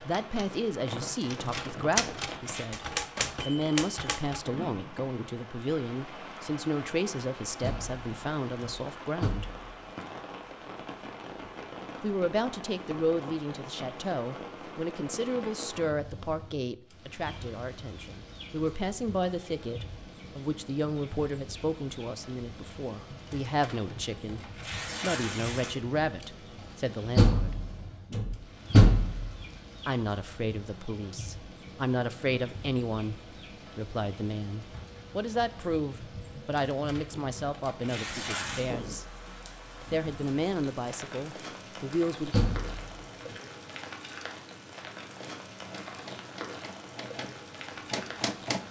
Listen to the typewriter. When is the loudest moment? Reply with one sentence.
The loudest moment of the typewriter is at 2 seconds.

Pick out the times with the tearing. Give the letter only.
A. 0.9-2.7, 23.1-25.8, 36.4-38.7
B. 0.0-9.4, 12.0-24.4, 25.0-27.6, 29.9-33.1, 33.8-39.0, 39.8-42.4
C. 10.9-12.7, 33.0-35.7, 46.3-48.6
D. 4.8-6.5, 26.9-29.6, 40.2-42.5
A.